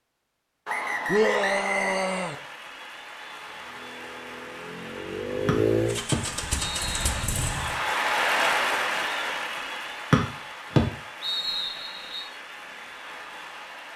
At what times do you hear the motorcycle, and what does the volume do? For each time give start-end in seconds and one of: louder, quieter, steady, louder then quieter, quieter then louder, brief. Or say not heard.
3.4-7.8 louder then quieter.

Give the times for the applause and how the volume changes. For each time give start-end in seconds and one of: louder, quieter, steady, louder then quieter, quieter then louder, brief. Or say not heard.
2.0-13.9 louder then quieter.